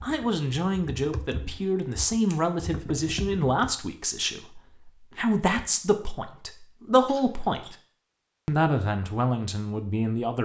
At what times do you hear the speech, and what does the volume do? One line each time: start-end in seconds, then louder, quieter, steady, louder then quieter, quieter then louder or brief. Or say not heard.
0.0-7.8 steady
8.4-10.3 brief.